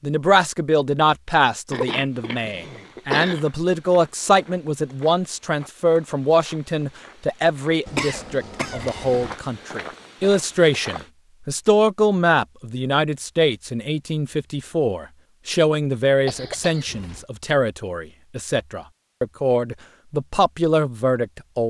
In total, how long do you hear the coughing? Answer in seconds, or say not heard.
4 s.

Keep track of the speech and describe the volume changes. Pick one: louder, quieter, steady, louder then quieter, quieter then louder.
steady.